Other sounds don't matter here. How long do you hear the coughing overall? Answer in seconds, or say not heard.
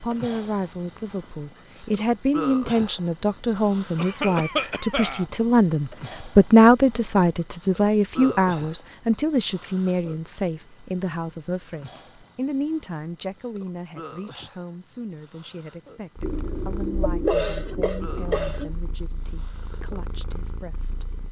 4 s.